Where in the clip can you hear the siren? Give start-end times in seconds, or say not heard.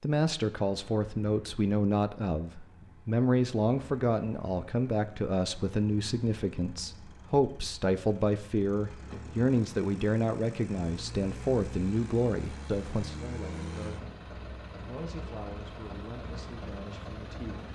not heard.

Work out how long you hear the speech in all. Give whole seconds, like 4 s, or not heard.
18 s.